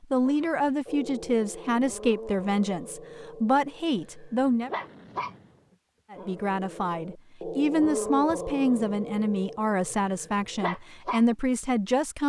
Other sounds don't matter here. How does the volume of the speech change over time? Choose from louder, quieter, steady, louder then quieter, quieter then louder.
steady.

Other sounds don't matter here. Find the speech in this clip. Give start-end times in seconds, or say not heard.
0.0-4.7, 6.1-12.2.